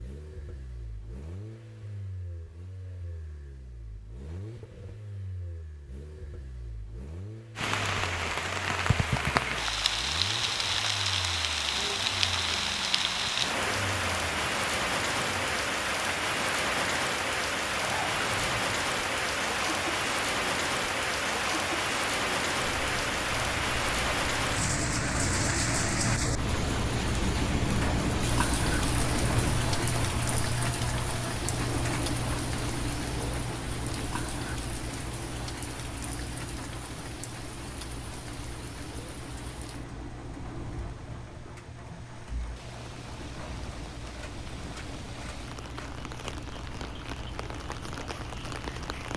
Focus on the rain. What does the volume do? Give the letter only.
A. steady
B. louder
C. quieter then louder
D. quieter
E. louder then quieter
D.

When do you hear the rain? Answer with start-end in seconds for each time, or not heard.
7.5-49.1.